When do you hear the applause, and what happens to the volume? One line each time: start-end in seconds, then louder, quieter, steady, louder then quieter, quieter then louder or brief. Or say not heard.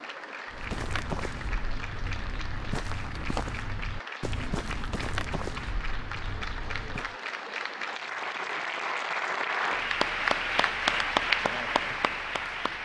0.0-12.7 louder.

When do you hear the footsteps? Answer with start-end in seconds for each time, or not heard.
0.5-7.2.